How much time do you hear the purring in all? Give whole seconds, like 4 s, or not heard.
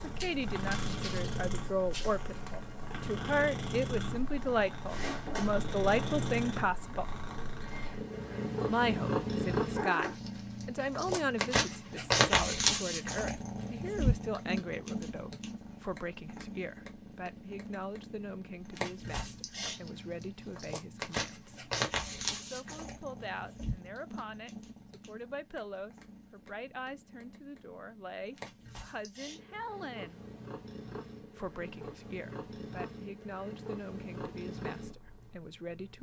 36 s.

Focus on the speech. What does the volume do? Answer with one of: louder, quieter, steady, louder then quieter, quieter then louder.
quieter.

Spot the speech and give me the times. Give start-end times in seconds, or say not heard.
0.0-7.1, 8.7-21.7, 22.4-30.2, 31.4-35.9.